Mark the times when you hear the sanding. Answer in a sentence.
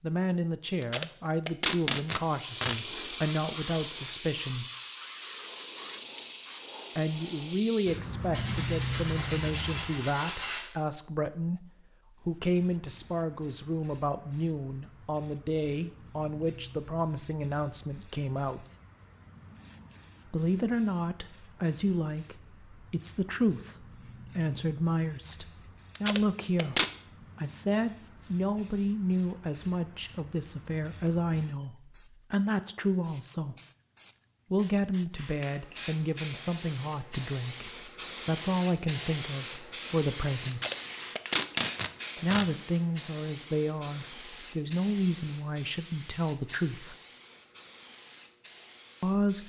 You can hear the sanding from 8.3 to 10.7 s.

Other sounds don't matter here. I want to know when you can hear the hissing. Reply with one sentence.
The hissing can be heard from 2.1 to 9.8 s and from 12.2 to 49.4 s.